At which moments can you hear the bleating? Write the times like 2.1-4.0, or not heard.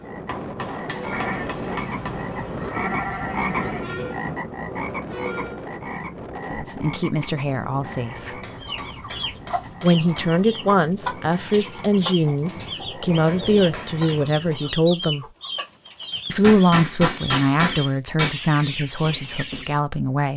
1.1-4.0.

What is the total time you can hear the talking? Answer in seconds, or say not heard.
11 s.